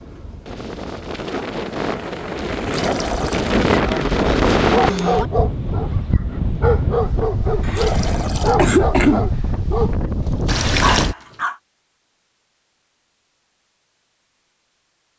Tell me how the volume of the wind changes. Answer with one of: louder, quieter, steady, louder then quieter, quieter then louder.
louder then quieter.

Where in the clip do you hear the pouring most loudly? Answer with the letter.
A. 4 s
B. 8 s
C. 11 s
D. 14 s
C.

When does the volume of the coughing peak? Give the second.
9 s.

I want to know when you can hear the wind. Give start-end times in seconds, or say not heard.
0.0-11.2.